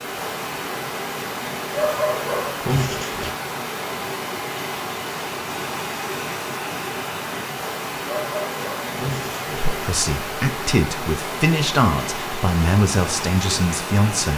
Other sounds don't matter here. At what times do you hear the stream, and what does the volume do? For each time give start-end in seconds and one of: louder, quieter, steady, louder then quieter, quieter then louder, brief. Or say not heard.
0.0-14.3 steady.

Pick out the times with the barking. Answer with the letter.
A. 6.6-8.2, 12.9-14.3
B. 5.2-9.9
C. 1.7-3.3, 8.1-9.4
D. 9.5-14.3
C.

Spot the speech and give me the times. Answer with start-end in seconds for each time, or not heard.
9.5-14.3.